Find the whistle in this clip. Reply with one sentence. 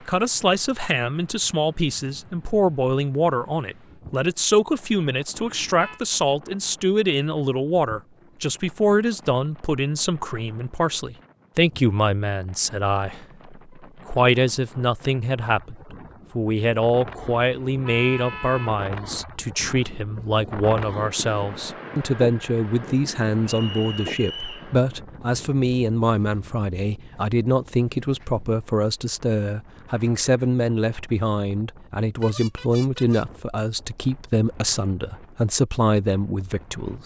The whistle can be heard from 23.4 to 24.7 s.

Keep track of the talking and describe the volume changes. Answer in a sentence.
The loudness of the talking stays about the same.